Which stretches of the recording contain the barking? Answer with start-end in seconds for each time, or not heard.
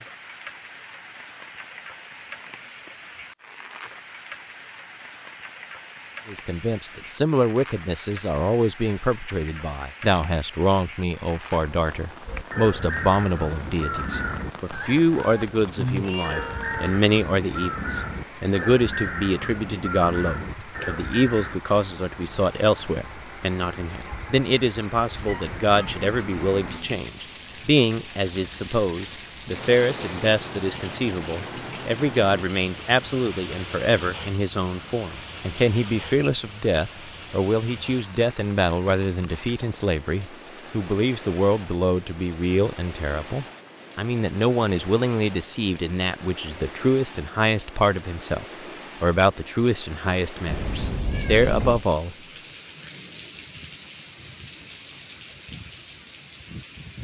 not heard.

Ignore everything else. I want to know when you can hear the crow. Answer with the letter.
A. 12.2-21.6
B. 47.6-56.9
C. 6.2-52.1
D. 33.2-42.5
A.